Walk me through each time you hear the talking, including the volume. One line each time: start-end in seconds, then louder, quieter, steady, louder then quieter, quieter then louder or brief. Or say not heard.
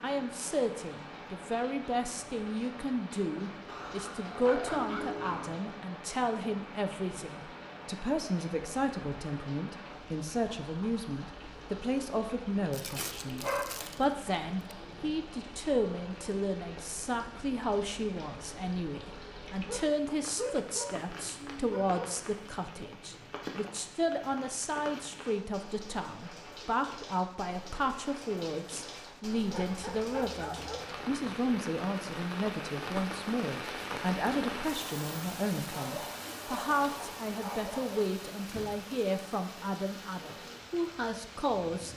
0.0-41.9 steady.